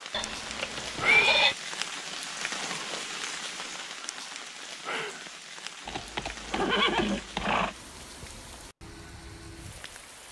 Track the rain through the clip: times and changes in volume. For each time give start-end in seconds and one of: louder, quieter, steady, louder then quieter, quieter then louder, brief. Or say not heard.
0.0-10.2 quieter.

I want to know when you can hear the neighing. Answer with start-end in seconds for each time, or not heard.
0.1-1.6, 5.8-7.8.